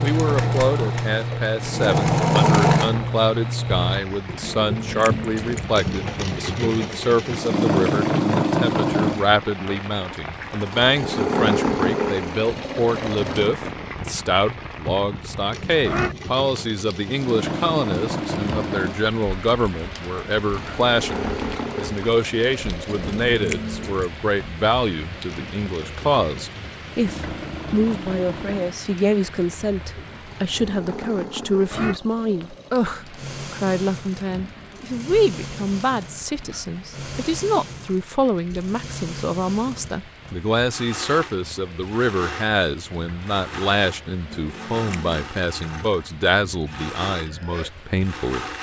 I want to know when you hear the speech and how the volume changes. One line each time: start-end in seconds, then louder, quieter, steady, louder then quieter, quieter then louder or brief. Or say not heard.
0.0-48.5 steady.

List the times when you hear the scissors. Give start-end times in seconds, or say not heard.
4.4-5.7, 22.9-24.1, 44.3-45.2.